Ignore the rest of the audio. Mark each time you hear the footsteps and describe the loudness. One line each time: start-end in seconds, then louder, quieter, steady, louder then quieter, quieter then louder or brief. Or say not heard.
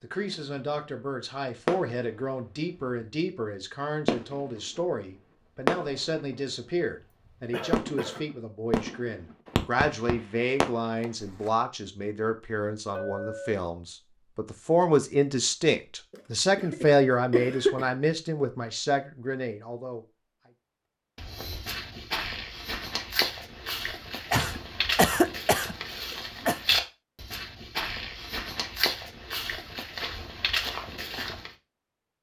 21.1-31.5 steady.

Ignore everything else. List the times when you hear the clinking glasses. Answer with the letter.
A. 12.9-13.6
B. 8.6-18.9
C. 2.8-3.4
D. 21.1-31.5
A.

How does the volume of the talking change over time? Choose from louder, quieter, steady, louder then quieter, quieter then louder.
louder.